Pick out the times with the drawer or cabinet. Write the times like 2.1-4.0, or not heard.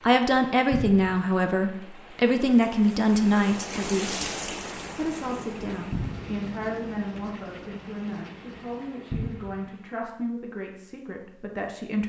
0.7-1.2, 5.9-6.4, 9.1-9.6.